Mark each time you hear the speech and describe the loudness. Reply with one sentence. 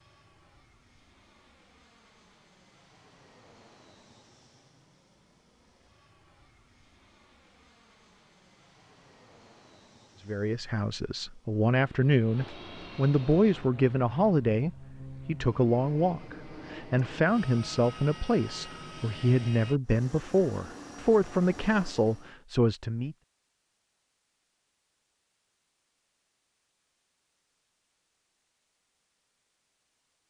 The speech can be heard from 10.2 to 23.1 s, at a steady volume.